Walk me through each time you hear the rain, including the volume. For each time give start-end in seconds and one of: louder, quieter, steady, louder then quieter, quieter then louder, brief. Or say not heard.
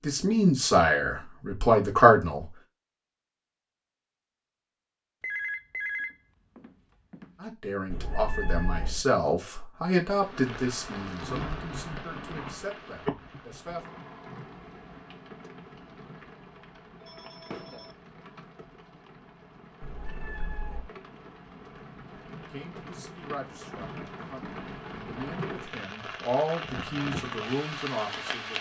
10.1-28.5 quieter then louder.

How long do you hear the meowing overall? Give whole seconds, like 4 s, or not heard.
2 s.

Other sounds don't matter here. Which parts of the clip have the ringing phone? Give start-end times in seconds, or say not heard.
5.2-7.3, 17.0-17.9.